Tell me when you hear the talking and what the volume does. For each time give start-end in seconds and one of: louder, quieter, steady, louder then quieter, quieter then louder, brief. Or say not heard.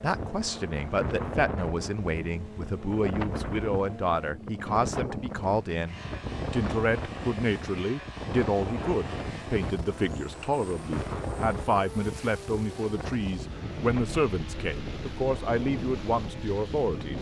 0.0-17.1 steady.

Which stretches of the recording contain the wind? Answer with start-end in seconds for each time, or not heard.
0.0-17.1.